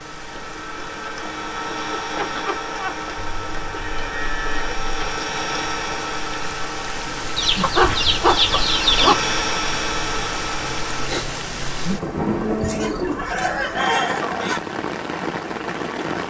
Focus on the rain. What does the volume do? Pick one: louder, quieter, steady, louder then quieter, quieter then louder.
louder.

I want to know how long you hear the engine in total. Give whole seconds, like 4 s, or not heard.
11 s.